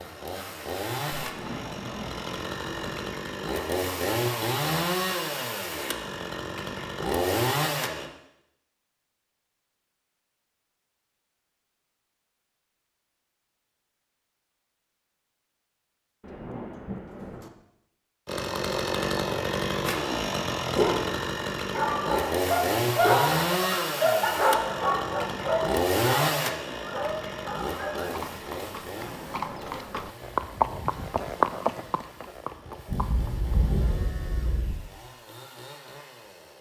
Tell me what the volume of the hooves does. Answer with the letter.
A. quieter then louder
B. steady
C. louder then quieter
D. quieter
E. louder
C.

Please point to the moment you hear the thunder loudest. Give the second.
34 s.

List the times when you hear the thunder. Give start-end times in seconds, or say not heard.
1.1-3.0, 16.2-17.5, 32.9-34.8.